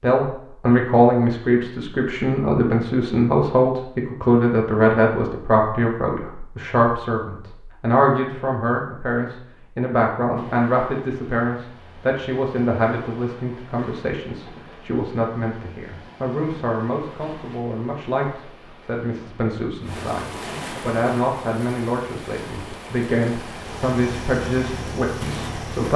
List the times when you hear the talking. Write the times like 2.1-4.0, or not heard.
0.0-25.9.